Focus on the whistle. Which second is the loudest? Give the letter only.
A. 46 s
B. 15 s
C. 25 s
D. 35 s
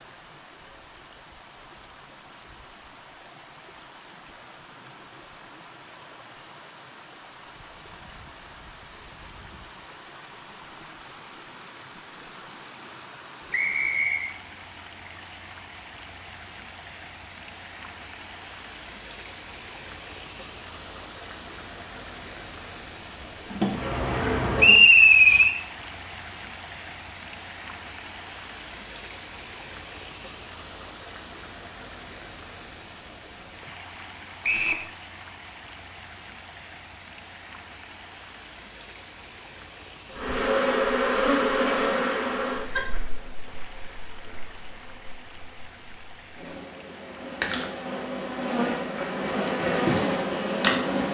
C.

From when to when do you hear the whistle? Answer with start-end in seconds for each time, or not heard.
13.5-14.3, 24.6-25.6, 34.4-34.9.